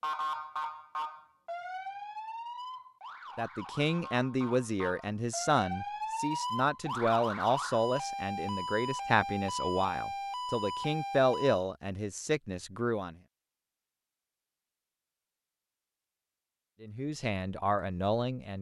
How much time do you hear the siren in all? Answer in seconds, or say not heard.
12 s.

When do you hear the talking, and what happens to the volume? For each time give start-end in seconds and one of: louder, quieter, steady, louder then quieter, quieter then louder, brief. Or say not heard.
3.4-13.2 steady
16.8-18.5 brief.